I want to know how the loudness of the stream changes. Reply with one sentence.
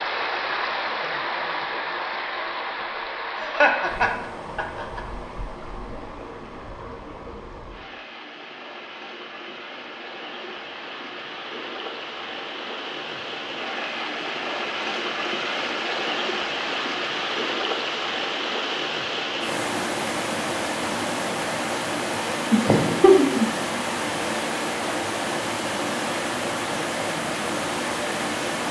The volume of the stream goes down, then up.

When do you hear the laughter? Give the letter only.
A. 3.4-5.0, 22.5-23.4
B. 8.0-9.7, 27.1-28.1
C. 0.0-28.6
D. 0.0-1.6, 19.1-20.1
A.